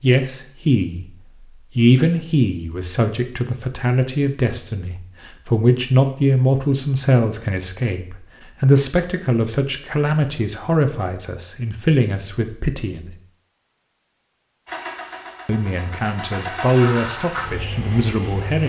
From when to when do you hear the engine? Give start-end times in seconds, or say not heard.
14.7-18.6.